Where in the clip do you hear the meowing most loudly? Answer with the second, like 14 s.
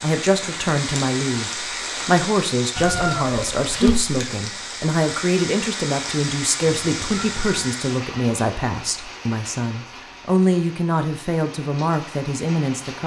4 s.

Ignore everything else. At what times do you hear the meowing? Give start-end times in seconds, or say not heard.
2.8-4.0, 6.7-7.8.